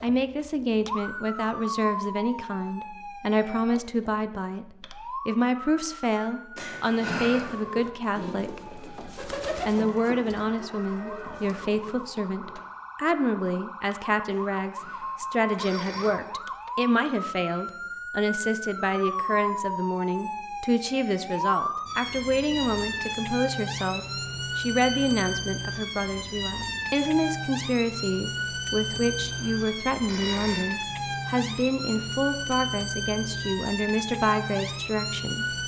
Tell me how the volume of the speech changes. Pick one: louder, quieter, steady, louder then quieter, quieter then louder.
steady.